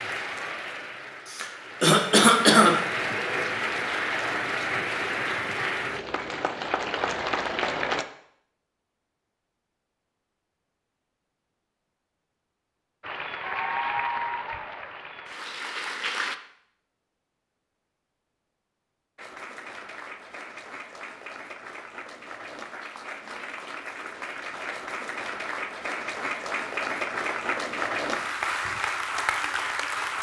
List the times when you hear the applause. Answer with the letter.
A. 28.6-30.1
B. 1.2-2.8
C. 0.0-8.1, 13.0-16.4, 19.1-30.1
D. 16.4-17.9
C.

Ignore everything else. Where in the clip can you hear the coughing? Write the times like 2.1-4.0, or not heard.
1.2-2.8.